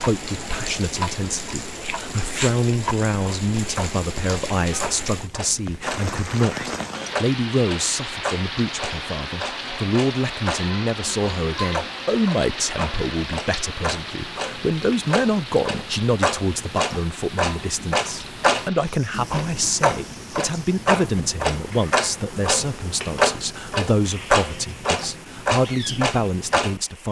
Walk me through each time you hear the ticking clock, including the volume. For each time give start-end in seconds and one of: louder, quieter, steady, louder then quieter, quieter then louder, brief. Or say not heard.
0.0-26.8 louder.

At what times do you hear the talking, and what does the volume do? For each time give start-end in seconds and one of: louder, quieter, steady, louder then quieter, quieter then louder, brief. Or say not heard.
0.0-27.0 steady.